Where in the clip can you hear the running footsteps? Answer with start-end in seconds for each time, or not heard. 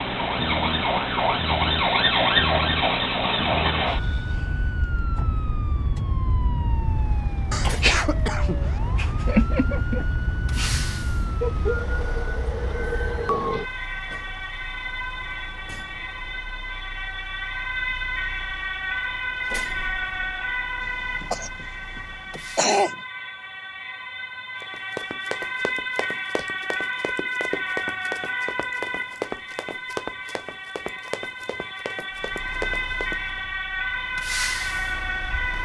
24.6-33.4.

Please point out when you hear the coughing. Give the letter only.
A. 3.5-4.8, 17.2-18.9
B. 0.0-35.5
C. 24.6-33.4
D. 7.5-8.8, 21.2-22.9
D.